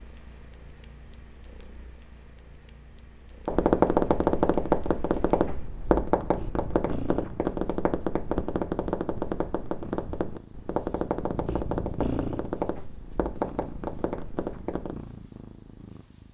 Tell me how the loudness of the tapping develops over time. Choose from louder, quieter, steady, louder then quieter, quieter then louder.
quieter.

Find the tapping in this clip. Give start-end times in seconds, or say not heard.
3.5-14.9.